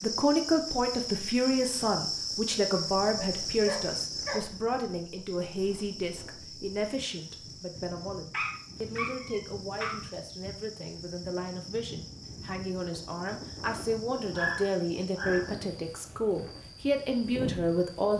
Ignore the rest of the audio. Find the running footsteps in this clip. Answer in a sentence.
You can't hear the running footsteps here.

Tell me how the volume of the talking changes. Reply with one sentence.
The loudness of the talking goes down, then up.